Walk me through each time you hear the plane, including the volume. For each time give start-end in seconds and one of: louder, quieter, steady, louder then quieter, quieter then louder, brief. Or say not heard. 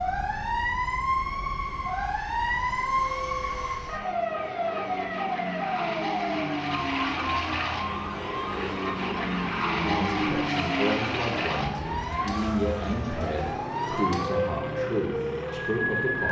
0.0-16.2 louder then quieter.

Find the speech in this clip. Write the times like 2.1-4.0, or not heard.
9.8-16.2.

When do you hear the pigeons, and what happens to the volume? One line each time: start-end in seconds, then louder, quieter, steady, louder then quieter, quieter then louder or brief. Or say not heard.
not heard.